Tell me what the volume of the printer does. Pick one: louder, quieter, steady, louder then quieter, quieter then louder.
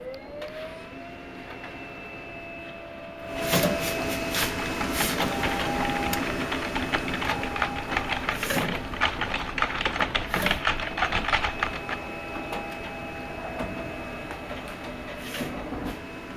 louder then quieter.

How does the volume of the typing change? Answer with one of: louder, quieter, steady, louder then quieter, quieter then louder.
louder.